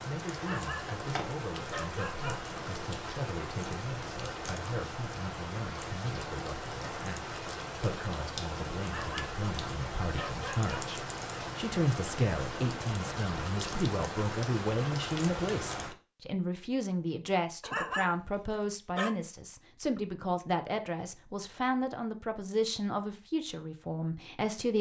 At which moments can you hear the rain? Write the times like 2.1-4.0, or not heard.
0.0-15.9.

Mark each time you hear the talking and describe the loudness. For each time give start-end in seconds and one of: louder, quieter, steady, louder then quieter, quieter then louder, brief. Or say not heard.
0.1-24.7 louder.